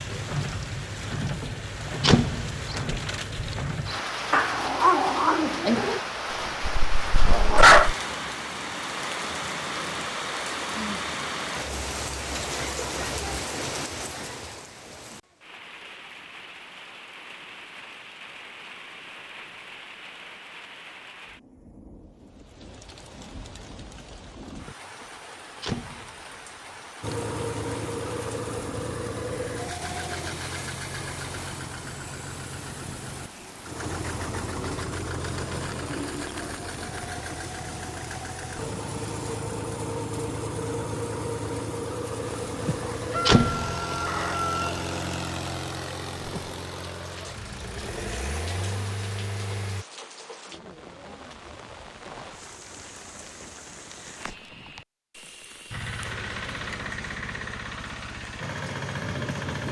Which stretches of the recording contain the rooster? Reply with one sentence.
You can hear the rooster from 43.1 to 44.8 s.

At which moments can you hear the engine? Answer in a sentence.
The engine can be heard from 27.0 to 49.9 s and from 55.7 to 59.6 s.